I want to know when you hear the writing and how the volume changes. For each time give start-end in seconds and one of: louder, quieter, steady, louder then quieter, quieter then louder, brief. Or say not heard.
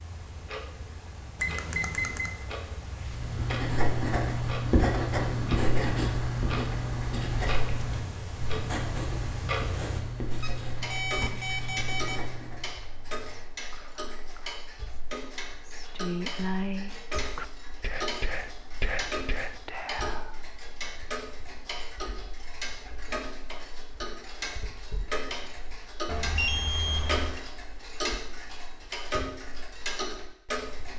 3.0-12.7 quieter.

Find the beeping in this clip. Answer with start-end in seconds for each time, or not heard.
1.4-2.3, 10.4-12.2, 26.1-27.4.